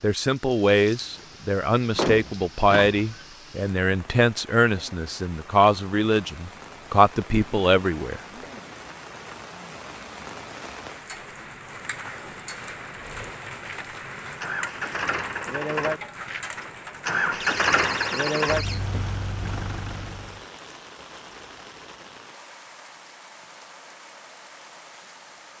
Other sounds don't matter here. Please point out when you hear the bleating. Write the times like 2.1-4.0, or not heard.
not heard.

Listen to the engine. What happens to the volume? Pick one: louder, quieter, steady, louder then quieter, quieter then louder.
louder then quieter.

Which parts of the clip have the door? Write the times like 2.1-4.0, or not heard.
1.8-3.2, 17.4-18.9.